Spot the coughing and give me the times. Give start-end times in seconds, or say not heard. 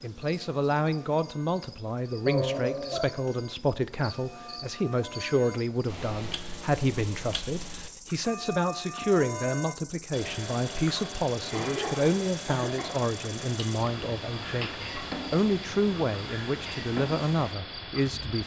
2.2-3.0, 11.5-12.9.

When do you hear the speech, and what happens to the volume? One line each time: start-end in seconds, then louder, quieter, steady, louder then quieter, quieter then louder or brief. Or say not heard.
0.0-18.4 steady.